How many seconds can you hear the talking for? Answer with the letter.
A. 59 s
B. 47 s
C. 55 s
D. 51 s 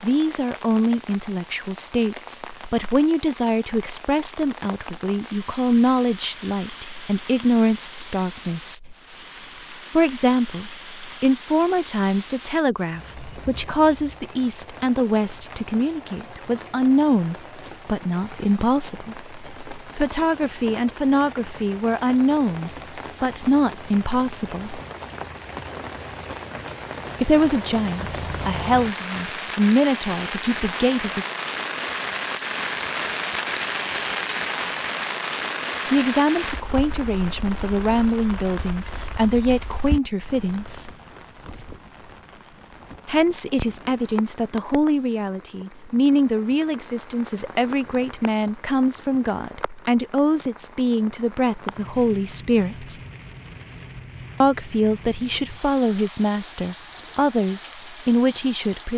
B.